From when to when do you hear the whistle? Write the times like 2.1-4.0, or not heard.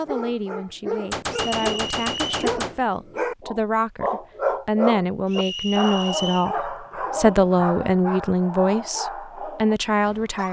1.3-2.3, 5.3-6.5.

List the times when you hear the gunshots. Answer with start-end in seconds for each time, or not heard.
1.1-2.8.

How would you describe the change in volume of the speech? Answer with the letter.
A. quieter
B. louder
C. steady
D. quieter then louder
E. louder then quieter
B.